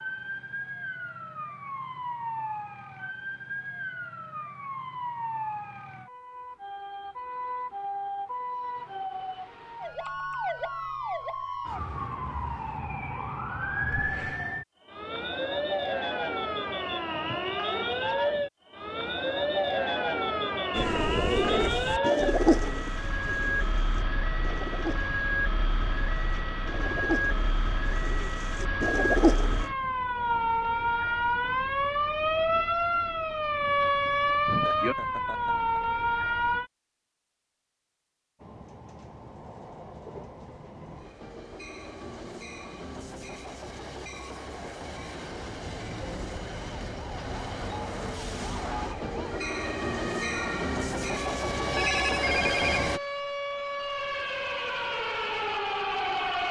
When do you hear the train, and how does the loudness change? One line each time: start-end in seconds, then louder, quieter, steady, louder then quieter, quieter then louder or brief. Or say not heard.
38.4-53.0 louder.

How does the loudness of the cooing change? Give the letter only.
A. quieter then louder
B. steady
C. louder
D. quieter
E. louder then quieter
A.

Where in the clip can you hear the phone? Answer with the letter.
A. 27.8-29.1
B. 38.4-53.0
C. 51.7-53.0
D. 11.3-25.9
C.